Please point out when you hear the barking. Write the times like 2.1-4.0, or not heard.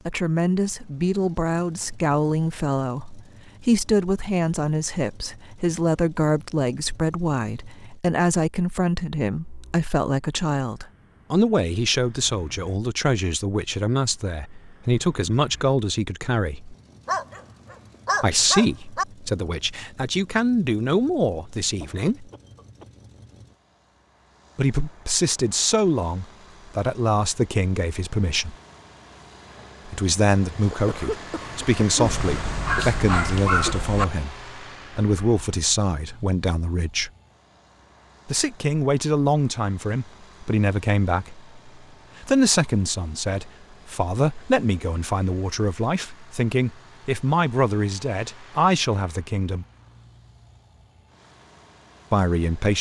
17.1-19.1, 32.0-34.0.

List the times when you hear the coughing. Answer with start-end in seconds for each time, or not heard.
21.8-22.9, 30.7-32.1.